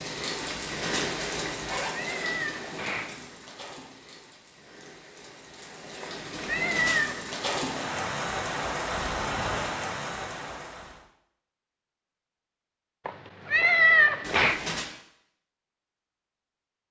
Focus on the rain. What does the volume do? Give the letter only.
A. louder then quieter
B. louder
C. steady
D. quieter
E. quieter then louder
E.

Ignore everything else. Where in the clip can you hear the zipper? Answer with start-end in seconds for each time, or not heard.
0.4-1.9, 6.3-7.0, 14.2-14.9.